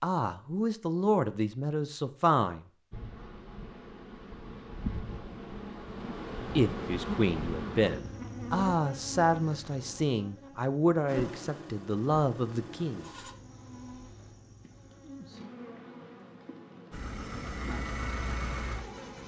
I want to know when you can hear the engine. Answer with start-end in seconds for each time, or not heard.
11.1-13.3, 16.9-19.2.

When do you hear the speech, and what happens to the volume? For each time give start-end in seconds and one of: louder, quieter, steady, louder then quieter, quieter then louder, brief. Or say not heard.
0.0-2.6 brief
6.5-13.1 steady.